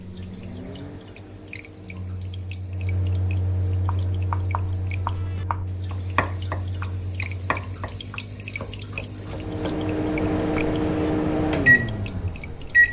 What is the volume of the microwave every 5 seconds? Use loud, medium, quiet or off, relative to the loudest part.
quiet, quiet, loud.